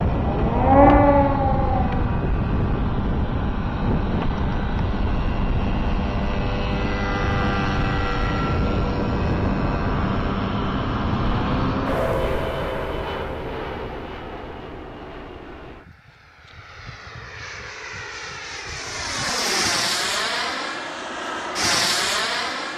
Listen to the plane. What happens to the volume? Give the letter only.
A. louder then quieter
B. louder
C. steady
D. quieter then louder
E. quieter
D.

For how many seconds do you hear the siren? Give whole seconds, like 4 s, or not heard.
2 s.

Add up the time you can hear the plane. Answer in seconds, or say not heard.
23 s.